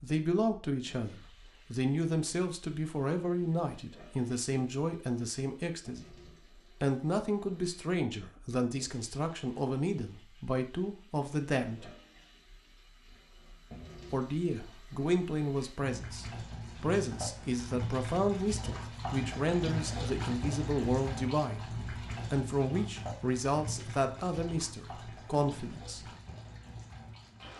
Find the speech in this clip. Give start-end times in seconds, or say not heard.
0.0-6.0, 6.8-11.9, 14.1-26.1.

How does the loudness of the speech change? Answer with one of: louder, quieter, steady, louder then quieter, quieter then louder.
steady.